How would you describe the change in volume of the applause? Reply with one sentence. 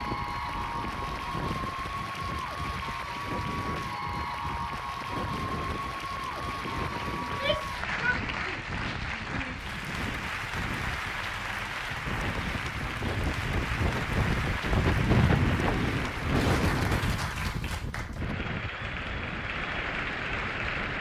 The loudness of the applause stays about the same.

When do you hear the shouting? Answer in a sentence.
You can hear the shouting from 7.2 to 9.6 s.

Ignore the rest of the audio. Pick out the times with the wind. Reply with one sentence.
You can hear the wind from 0.0 to 20.9 s.